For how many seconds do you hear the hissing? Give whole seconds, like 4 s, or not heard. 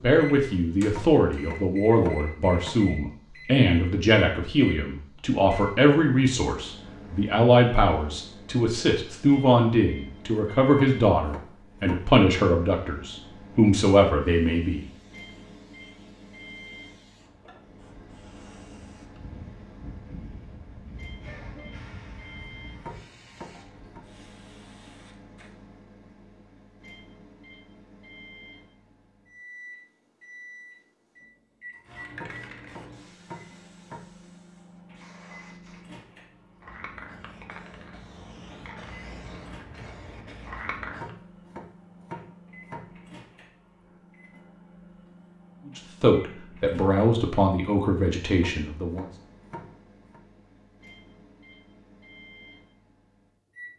21 s.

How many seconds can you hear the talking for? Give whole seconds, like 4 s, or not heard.
18 s.